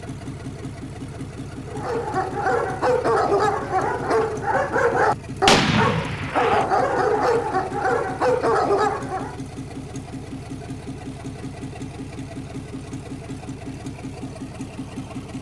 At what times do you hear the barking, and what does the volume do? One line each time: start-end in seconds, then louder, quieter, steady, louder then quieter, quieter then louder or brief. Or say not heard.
1.6-9.3 steady.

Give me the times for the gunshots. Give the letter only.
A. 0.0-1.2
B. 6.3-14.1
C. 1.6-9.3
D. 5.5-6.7
D.